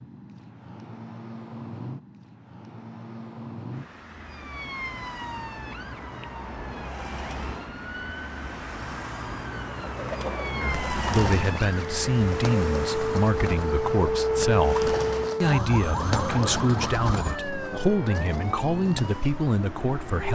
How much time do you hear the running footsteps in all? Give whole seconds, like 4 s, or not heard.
not heard.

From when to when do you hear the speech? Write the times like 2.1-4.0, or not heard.
10.6-20.3.